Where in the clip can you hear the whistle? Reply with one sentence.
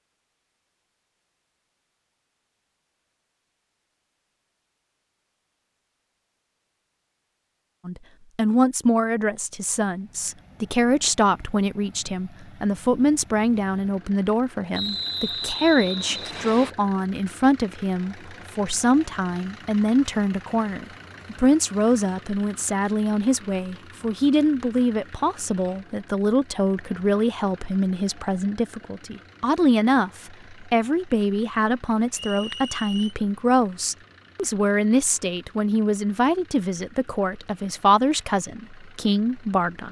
The whistle can be heard from 14.7 to 16.7 s and from 32.1 to 33.1 s.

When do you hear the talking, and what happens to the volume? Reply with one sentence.
You can hear the talking from 7.8 to 39.8 s, at a steady volume.